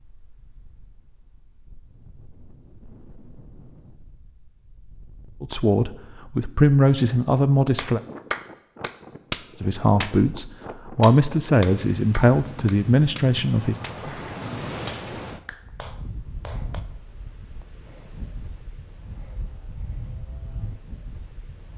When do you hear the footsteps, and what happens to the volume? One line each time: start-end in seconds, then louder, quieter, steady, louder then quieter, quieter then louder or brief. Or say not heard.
not heard.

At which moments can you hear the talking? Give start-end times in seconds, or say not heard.
5.4-8.0, 9.6-13.8.